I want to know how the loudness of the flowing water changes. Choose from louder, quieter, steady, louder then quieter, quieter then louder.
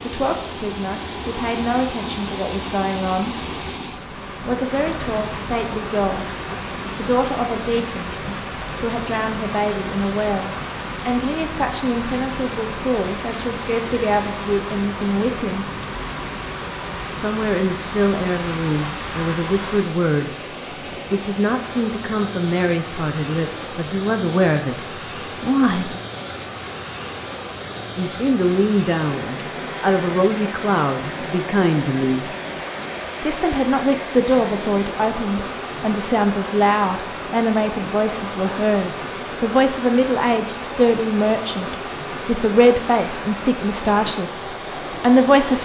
steady.